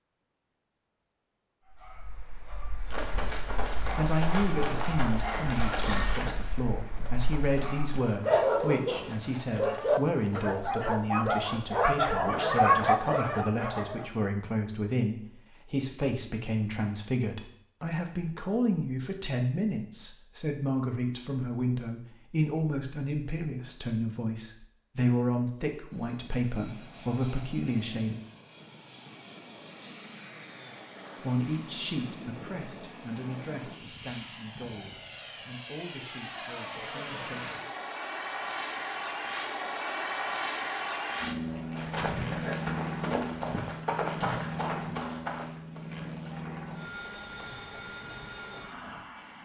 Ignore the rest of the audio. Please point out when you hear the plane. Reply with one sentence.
You can hear the plane from 25.9 to 49.4 s.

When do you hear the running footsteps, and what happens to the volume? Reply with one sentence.
You can hear the running footsteps from 2.9 to 10.6 s, getting quieter; and from 41.8 to 49.4 s, getting quieter.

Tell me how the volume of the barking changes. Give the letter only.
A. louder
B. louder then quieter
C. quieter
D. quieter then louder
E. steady
A.